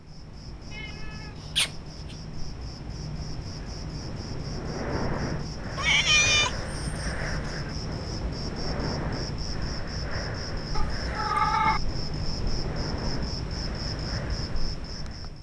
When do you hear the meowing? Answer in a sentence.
The meowing can be heard from 0.7 to 2.1 s, from 5.8 to 7.7 s and from 10.8 to 11.8 s.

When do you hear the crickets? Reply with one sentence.
The crickets can be heard from 0.0 to 15.3 s.